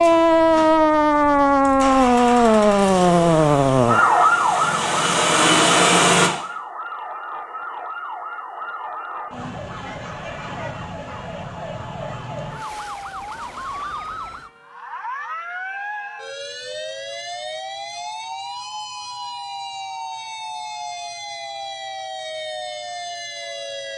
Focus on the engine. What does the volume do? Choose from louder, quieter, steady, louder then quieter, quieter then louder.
louder.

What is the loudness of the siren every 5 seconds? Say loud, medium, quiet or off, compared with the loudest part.
loud, quiet, quiet, quiet, quiet.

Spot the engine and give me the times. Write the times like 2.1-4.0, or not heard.
0.0-6.3.